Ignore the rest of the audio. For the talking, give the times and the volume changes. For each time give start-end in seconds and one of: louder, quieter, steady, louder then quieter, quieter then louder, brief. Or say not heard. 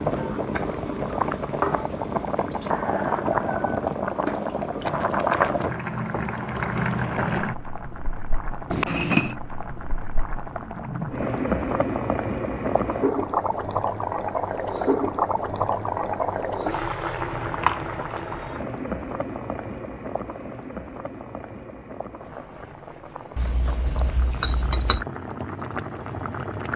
not heard.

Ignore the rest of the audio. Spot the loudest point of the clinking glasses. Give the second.
9 s.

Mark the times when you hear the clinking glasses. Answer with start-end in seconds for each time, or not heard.
8.7-9.3, 23.4-25.1.